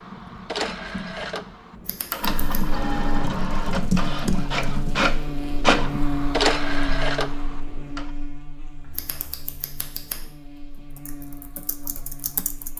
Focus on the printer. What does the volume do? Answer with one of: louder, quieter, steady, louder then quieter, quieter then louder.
louder.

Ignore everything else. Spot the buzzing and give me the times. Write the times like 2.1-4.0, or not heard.
2.2-12.7.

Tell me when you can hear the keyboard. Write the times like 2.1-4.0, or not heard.
0.0-5.0, 8.8-12.7.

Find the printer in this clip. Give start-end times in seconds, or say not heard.
0.0-8.1.